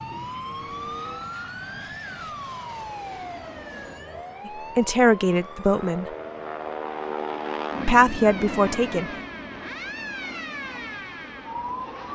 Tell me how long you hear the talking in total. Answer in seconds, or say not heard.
3 s.